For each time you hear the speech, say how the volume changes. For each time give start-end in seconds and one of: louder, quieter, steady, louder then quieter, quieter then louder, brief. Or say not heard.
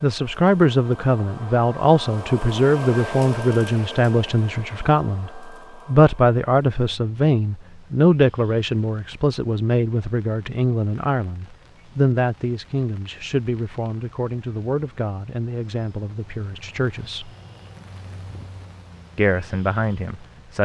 0.0-17.3 quieter
19.1-20.6 brief.